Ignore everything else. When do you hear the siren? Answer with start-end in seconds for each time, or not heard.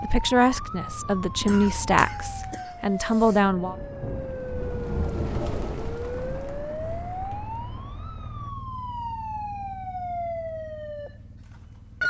0.0-12.0.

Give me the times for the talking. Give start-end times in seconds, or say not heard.
0.0-3.8.